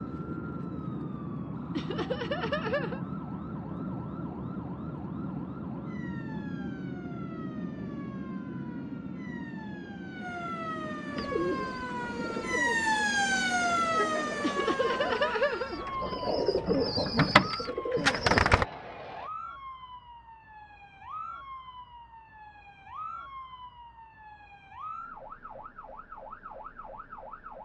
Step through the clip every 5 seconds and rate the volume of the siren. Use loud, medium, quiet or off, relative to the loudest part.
quiet, quiet, loud, medium, quiet, quiet.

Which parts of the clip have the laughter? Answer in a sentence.
The laughter can be heard from 1.8 to 3.1 s and from 14.4 to 16.1 s.